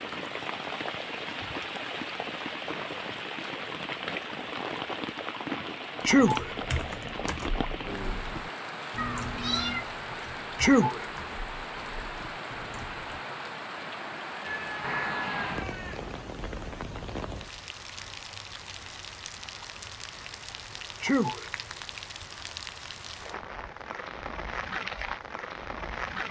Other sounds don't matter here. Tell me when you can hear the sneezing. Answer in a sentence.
The sneezing can be heard from 6.0 to 6.5 s, from 10.6 to 11.1 s and from 21.0 to 21.5 s.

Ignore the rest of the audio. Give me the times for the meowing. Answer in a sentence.
The meowing can be heard from 8.9 to 9.8 s and from 14.4 to 16.1 s.